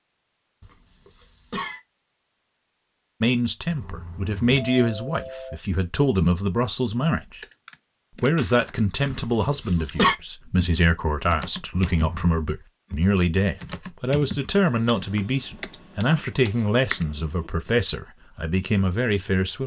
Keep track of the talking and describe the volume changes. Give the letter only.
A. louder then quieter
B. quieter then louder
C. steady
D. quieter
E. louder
C.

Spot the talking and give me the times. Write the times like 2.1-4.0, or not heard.
3.2-7.4, 8.2-19.6.